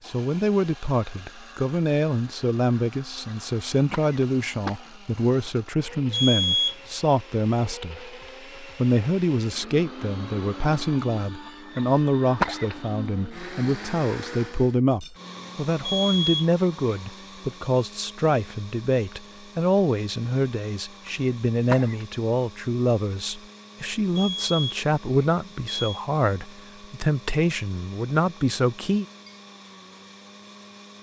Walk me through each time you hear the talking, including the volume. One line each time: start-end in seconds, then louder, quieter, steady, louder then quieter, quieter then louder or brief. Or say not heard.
0.1-29.1 steady.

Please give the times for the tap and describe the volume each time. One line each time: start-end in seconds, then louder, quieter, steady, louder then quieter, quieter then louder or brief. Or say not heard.
not heard.